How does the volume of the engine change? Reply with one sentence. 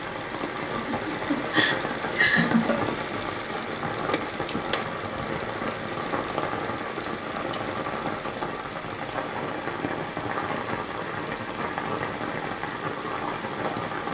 The loudness of the engine goes down.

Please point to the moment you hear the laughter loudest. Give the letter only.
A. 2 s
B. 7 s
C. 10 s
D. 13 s
A.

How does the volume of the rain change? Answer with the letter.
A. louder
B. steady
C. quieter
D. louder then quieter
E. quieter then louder
B.